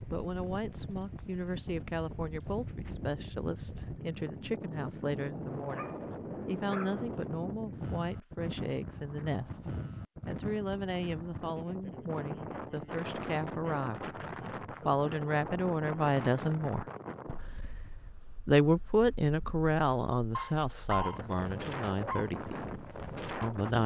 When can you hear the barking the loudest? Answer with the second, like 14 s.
21 s.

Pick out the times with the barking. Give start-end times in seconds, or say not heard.
5.6-7.0, 20.3-22.3.